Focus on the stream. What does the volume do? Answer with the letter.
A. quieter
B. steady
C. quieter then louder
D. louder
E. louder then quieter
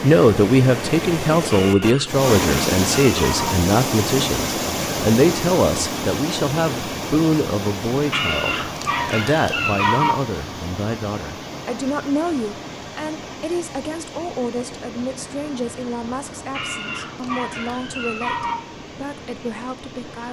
A.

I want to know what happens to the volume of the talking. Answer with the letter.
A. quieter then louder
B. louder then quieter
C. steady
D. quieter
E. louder
D.